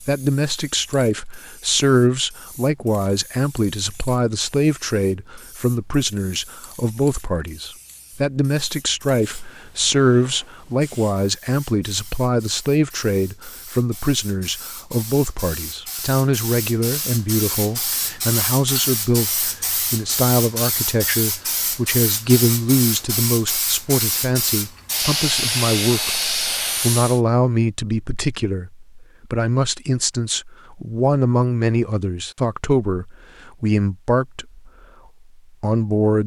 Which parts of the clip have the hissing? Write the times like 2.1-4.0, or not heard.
0.0-27.2.